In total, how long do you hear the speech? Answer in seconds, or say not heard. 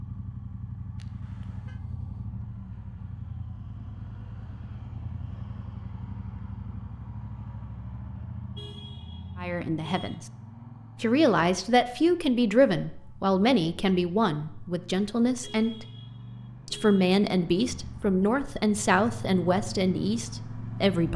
10 s.